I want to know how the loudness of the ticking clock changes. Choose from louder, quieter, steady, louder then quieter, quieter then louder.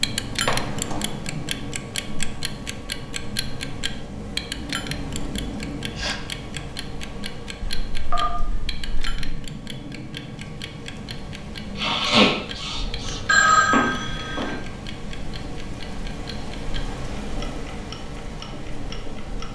quieter.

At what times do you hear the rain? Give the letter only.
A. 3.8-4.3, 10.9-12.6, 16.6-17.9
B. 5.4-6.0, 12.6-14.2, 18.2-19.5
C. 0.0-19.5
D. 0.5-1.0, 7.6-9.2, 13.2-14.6
C.